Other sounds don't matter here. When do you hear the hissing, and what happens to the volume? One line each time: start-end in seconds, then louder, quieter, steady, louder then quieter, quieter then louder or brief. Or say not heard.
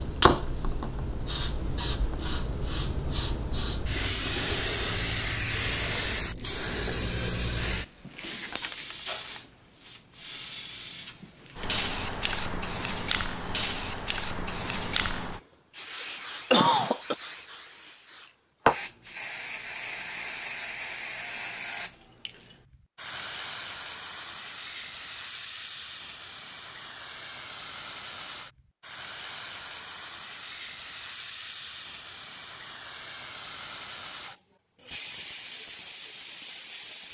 0.0-37.0 quieter.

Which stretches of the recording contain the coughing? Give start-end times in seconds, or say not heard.
15.9-17.1.